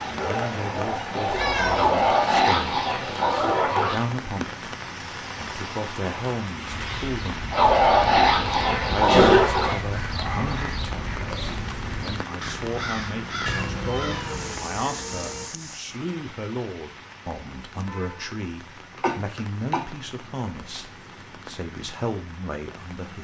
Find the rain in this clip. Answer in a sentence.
The rain can be heard from 0.0 to 23.1 s.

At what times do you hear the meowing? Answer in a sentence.
The meowing can be heard from 1.3 to 1.9 s and from 13.4 to 15.4 s.